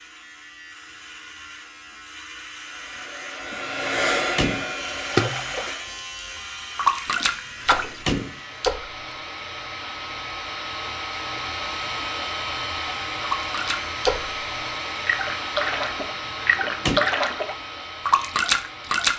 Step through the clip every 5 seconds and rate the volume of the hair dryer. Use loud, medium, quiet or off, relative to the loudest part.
loud, medium, loud, medium.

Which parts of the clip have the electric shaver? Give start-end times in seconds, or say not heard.
0.0-8.7.